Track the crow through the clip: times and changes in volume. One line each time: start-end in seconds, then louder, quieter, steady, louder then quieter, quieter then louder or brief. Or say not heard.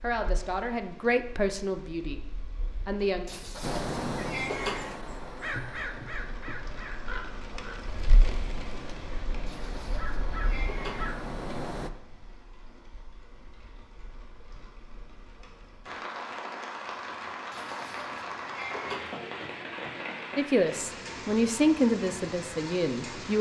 3.6-11.9 quieter then louder.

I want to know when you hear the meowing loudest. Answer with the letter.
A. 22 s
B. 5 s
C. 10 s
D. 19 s
B.